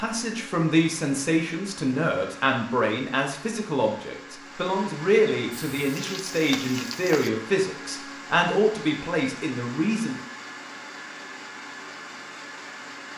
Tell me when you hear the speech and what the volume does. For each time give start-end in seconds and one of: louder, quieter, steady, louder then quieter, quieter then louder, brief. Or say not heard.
0.0-10.2 steady.